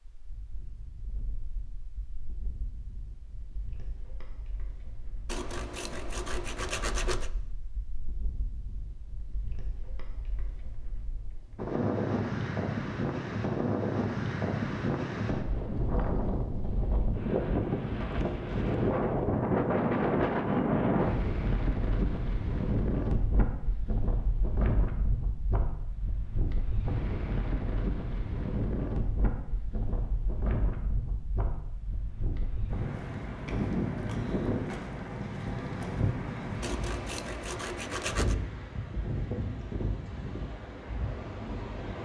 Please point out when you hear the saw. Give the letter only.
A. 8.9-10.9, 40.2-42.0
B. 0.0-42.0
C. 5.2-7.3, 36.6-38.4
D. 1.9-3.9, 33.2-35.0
C.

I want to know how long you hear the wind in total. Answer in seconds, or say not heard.
42 s.